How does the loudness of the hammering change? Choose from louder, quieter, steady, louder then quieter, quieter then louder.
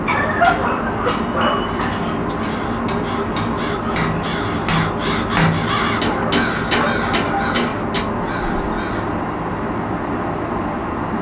louder.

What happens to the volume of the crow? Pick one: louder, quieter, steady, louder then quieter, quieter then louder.
louder then quieter.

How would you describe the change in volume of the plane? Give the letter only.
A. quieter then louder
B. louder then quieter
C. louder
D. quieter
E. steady
E.